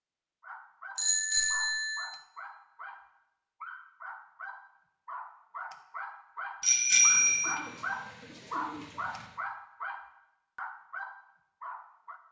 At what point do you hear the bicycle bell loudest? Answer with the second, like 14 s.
7 s.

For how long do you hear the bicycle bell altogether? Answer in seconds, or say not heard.
2 s.